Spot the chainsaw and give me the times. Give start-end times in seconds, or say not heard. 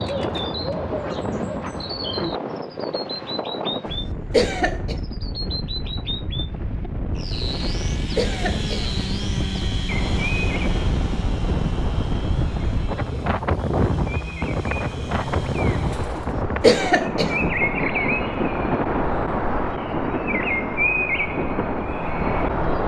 7.2-16.4.